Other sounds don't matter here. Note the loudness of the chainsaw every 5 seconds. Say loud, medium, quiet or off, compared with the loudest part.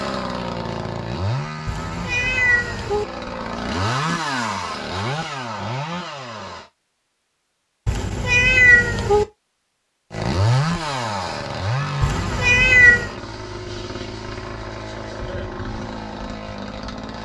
loud, loud, loud, medium.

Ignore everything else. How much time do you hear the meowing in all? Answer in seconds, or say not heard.
4 s.